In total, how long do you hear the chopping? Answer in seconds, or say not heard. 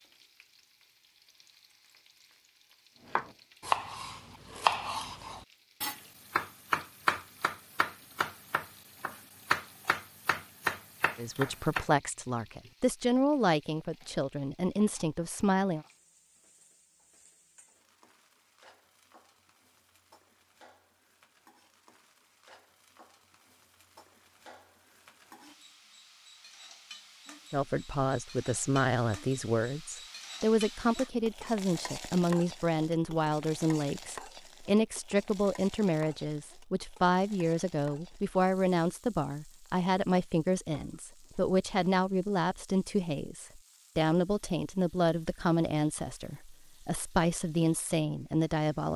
9 s.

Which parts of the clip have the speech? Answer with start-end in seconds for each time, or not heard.
11.2-15.8, 27.5-48.9.